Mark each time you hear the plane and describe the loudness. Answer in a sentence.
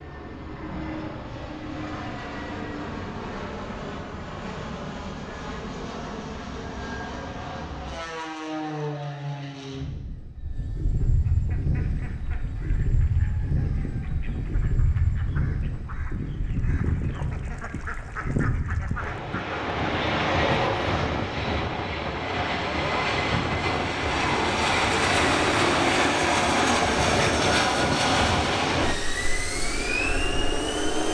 You can hear the plane from 0.0 to 31.0 s, getting louder.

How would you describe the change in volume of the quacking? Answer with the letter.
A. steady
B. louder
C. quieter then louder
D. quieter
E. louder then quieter
B.